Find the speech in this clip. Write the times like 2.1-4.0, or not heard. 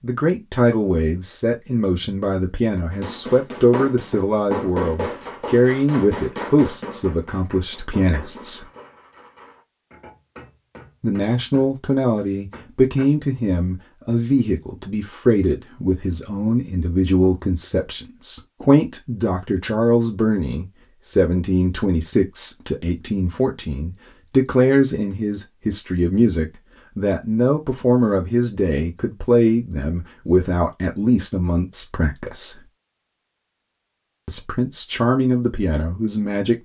0.0-8.7, 11.0-32.6, 34.2-36.6.